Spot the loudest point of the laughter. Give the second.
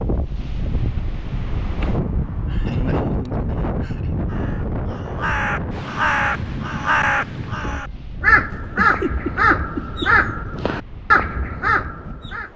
9 s.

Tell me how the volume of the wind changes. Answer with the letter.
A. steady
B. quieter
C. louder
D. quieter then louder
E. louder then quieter
B.